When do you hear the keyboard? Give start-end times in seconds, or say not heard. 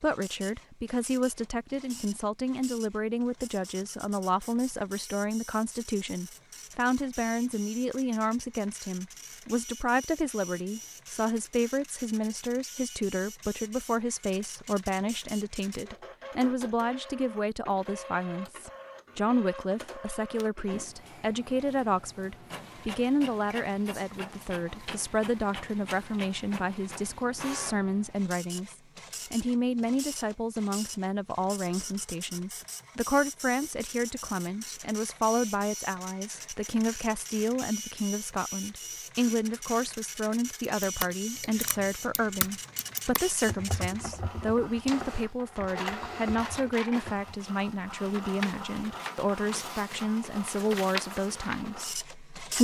40.8-47.4.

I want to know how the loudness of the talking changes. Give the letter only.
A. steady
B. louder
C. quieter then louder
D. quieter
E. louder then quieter
A.